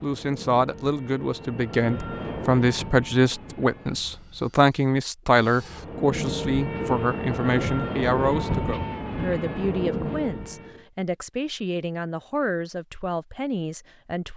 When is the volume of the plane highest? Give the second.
8 s.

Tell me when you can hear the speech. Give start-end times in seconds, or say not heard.
0.0-14.3.